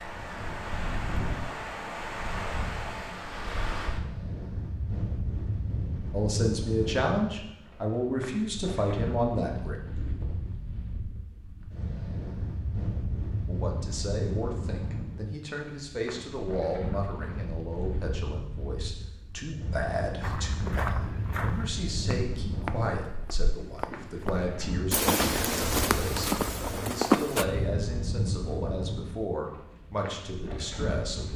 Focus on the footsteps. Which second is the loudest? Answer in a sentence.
The loudest moment of the footsteps is at 27 seconds.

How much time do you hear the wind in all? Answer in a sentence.
You can hear the wind for 31 seconds altogether.